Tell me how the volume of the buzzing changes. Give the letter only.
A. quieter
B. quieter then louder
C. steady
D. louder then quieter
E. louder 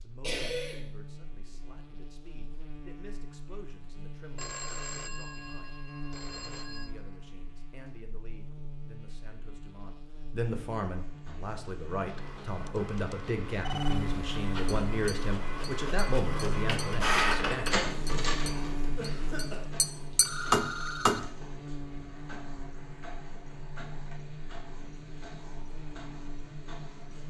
D.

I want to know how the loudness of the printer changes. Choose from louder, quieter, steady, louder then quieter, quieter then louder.
louder then quieter.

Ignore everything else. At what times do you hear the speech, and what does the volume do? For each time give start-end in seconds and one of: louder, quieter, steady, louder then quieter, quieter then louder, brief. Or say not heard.
0.0-17.6 louder.